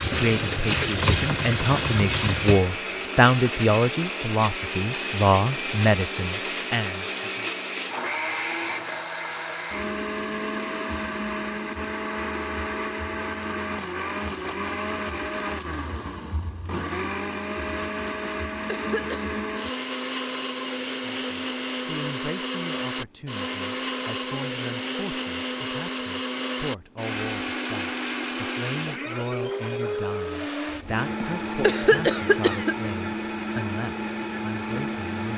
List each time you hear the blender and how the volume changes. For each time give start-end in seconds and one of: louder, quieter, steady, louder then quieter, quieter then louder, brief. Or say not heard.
0.0-35.3 steady.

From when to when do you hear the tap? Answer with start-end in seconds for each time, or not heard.
0.0-2.8.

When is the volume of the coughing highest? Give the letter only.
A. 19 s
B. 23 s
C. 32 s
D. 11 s
C.